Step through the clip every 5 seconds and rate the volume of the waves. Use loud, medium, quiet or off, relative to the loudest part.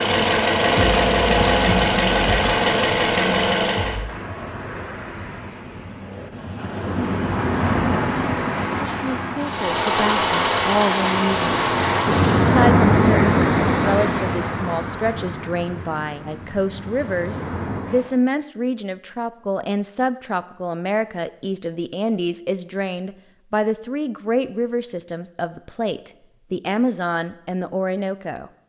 medium, medium, loud, quiet, off, off.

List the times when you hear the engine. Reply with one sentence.
The engine can be heard from 0.0 to 4.2 s and from 9.3 to 12.7 s.